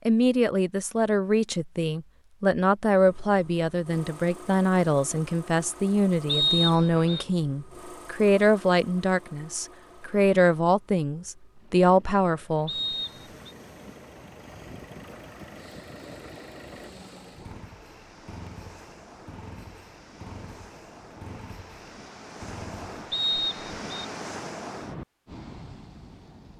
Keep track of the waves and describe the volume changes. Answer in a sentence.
The volume of the waves goes up.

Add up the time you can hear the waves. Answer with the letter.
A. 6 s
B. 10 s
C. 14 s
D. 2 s
C.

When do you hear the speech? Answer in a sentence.
The speech can be heard from 0.1 to 12.7 s.